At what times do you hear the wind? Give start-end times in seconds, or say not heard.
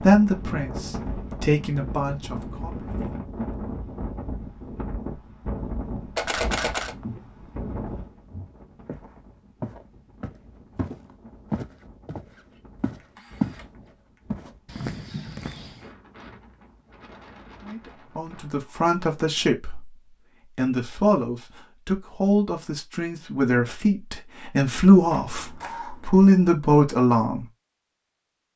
0.0-19.5.